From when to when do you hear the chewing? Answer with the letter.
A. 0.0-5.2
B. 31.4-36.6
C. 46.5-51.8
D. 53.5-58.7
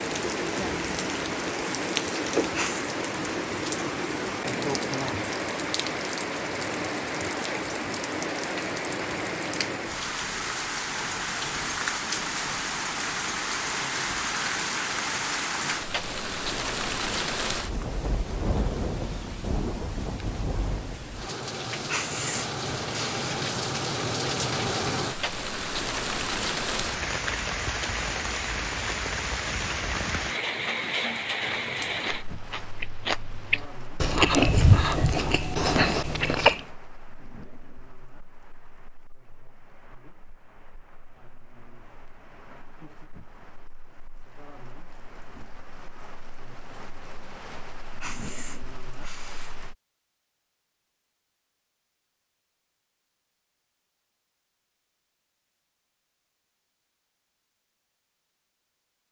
B.